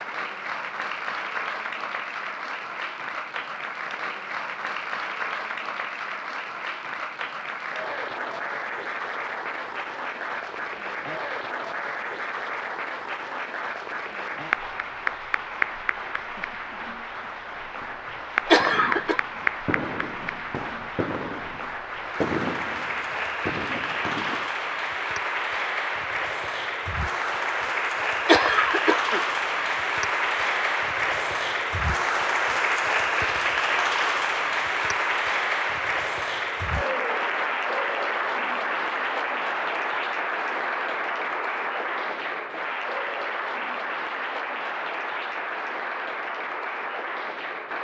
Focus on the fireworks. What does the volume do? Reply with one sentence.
The volume of the fireworks goes up, then down.